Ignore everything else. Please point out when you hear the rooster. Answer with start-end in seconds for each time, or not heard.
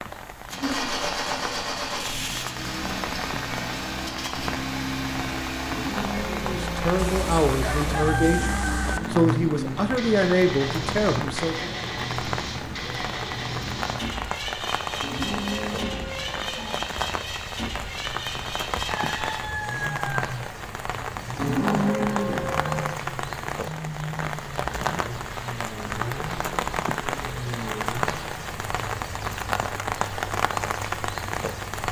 7.0-9.0, 19.0-20.3.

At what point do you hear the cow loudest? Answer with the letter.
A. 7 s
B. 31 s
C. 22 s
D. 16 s
C.